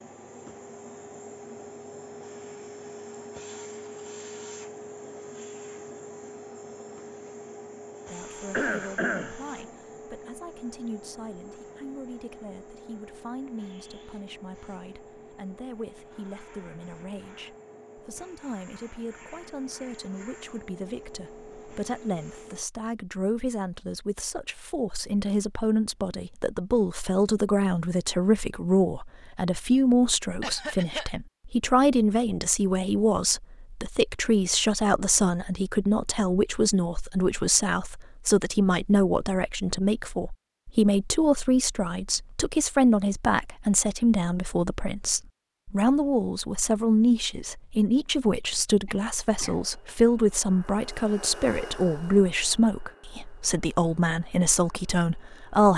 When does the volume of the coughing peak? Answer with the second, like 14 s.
9 s.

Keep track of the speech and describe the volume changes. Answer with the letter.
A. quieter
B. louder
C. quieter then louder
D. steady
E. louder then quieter
B.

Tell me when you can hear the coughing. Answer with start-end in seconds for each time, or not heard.
8.5-9.4, 30.4-31.1, 48.9-49.7.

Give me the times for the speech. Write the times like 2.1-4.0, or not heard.
8.1-55.7.